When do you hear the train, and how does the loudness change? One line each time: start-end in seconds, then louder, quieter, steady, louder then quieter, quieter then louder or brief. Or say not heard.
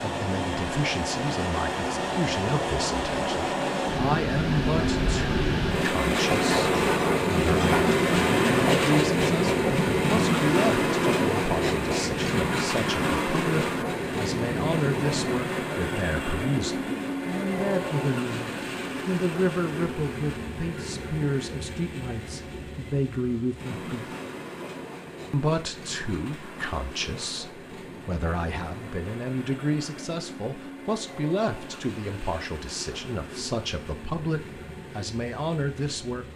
0.0-36.3 quieter.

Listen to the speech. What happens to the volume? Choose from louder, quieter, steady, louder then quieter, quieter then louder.
steady.